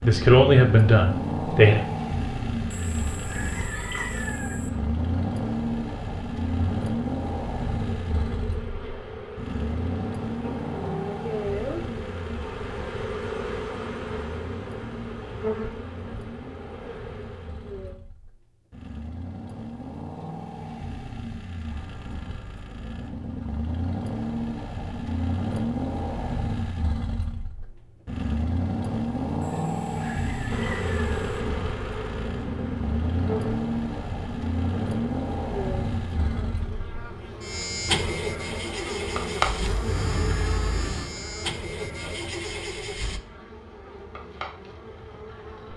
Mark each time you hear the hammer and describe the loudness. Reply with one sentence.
The hammer can't be heard in this clip.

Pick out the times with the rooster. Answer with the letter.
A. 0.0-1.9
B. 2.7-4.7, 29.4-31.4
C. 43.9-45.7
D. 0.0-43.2
B.